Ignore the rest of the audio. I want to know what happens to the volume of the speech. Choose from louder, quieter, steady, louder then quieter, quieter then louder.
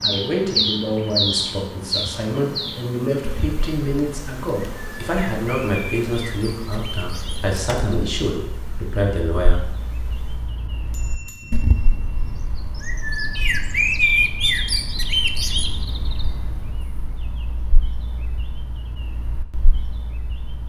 steady.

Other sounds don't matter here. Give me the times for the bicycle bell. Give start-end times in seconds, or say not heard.
10.8-12.8.